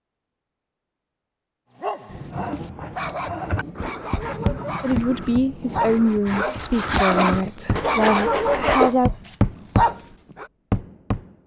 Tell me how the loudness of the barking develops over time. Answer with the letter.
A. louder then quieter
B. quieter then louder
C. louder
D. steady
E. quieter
C.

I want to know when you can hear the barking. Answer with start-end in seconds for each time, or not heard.
1.8-10.4.